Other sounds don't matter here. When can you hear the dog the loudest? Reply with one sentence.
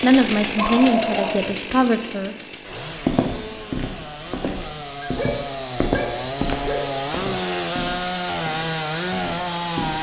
The volume of the dog peaks at 1 second.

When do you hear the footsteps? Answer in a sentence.
You can hear the footsteps from 2.9 to 9.9 s.